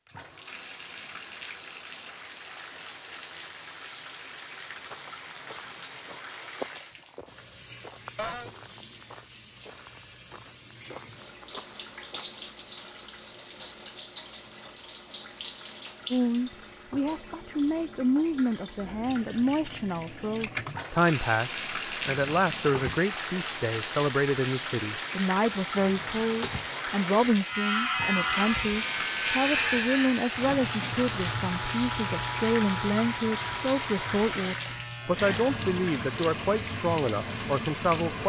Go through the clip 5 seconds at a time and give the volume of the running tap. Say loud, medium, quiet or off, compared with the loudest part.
medium, medium, medium, medium, loud, loud, loud, loud.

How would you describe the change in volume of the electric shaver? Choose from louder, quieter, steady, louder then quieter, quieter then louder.
quieter.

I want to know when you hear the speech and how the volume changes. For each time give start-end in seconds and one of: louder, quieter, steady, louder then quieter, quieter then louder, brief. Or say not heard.
16.1-38.2 steady.